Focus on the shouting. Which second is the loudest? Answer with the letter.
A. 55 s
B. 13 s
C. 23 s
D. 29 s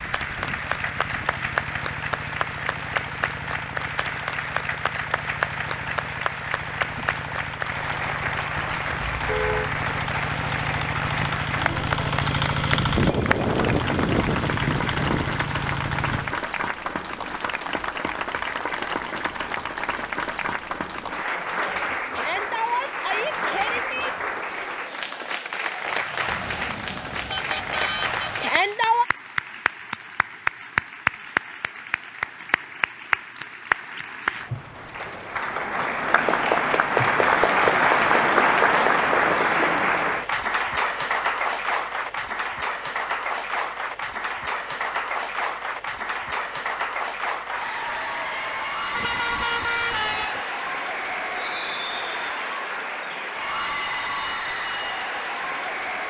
D.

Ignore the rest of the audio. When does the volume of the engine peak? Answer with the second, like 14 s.
13 s.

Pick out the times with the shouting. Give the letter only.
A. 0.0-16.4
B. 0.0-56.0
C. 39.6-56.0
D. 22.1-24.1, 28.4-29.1
D.